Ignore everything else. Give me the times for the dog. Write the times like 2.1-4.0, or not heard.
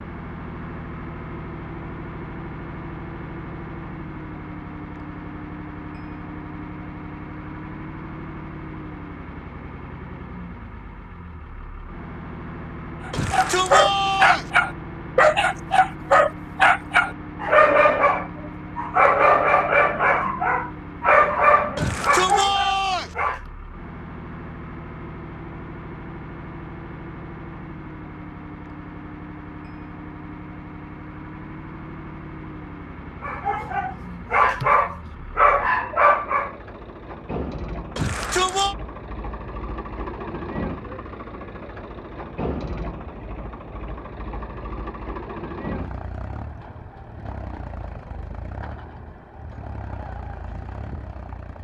13.1-23.4, 33.2-36.5.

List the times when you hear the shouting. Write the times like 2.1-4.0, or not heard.
13.1-14.5, 21.8-23.1, 38.0-38.8.